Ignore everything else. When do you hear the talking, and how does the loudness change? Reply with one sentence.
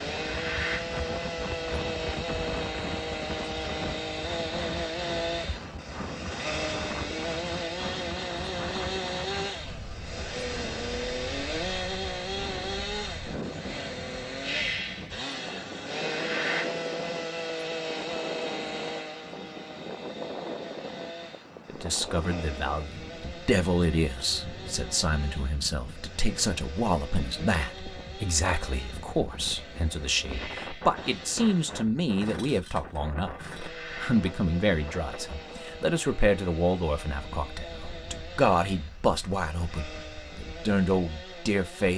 The talking can be heard from 21.6 to 41.9 s, at a steady volume.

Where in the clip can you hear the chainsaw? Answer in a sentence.
You can hear the chainsaw from 0.0 to 41.9 s.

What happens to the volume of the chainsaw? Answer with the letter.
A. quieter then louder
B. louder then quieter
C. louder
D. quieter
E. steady
D.